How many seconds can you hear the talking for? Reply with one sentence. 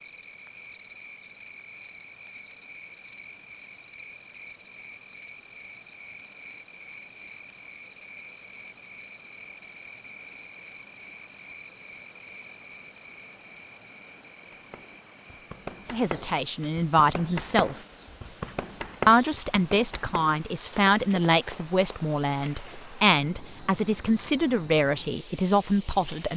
The talking can be heard for 9 seconds in total.